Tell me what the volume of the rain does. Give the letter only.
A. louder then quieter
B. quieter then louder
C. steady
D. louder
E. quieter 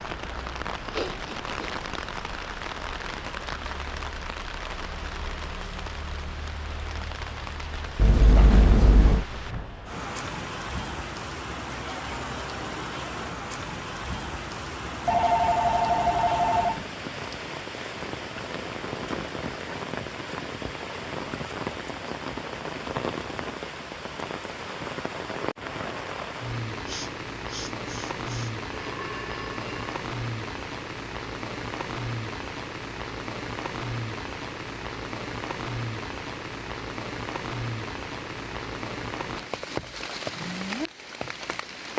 C.